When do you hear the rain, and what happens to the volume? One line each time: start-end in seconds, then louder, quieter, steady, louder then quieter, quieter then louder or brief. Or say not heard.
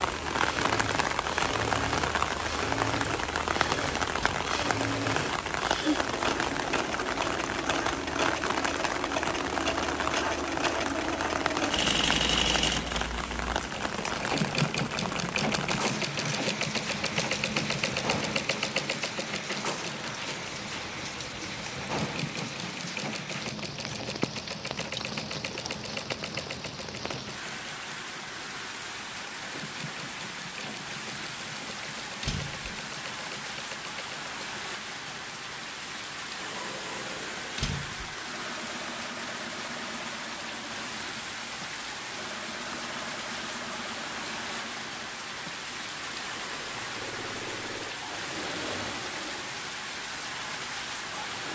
0.0-51.5 quieter.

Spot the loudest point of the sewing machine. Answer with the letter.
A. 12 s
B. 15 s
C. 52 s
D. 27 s
A.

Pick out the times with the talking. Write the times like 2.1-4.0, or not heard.
not heard.